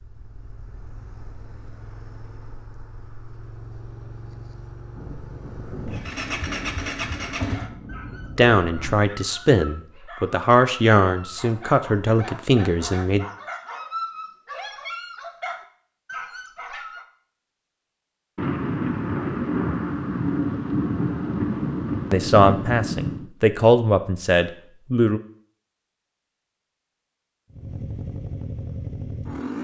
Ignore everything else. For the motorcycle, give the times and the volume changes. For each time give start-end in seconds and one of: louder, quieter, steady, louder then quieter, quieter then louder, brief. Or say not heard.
0.0-7.7 louder
27.5-29.6 brief.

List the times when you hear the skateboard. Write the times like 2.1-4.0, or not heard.
not heard.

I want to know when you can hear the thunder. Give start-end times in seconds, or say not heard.
5.0-9.1, 18.4-23.3.